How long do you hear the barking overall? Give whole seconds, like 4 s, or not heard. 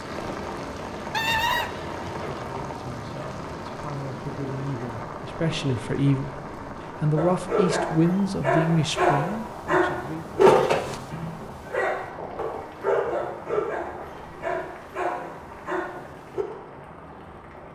9 s.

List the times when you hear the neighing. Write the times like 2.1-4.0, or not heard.
1.1-2.5, 10.4-11.1.